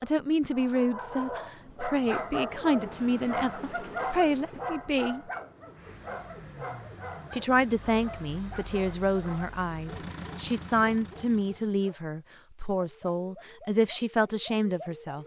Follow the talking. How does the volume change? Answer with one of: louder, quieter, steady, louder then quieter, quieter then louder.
steady.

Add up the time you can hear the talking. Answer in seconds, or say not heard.
13 s.